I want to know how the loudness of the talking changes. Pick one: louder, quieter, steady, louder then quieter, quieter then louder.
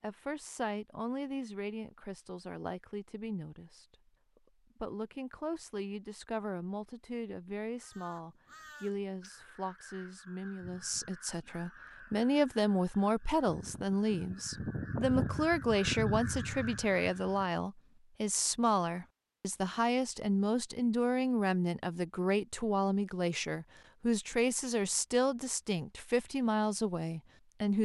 louder.